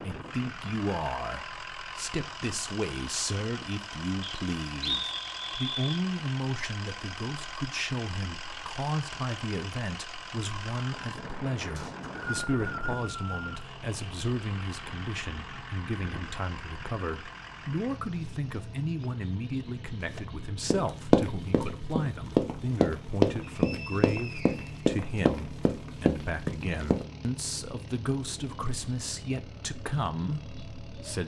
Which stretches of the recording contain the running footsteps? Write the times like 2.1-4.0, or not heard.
20.1-27.1.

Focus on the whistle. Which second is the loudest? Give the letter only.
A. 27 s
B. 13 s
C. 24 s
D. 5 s
D.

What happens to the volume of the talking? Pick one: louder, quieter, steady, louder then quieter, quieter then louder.
steady.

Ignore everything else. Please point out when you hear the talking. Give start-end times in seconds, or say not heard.
0.0-31.2.